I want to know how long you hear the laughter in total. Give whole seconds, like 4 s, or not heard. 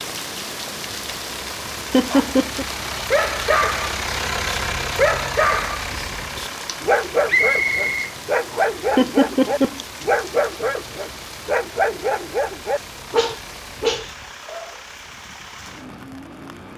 2 s.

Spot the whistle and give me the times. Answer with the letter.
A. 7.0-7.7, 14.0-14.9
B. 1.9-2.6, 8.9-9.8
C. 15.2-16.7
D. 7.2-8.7
D.